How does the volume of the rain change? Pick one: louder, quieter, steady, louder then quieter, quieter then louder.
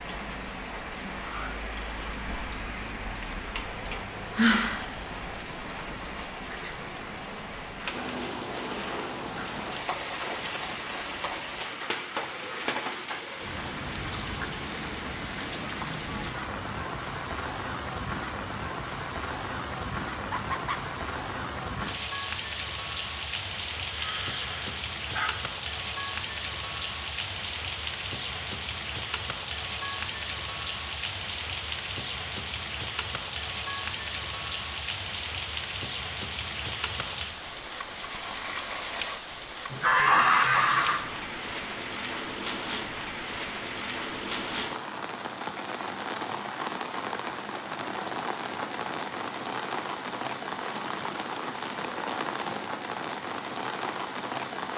steady.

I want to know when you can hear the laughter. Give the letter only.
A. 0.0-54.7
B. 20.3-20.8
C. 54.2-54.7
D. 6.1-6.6
B.